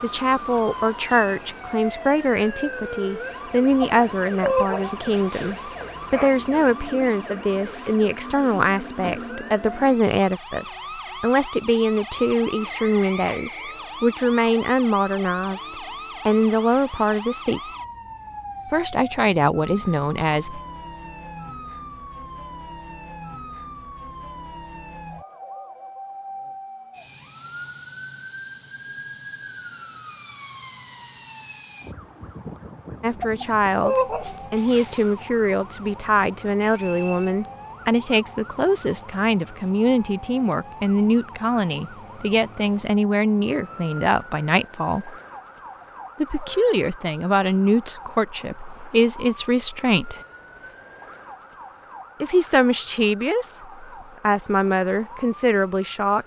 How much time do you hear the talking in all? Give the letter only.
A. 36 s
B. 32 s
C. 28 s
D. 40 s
D.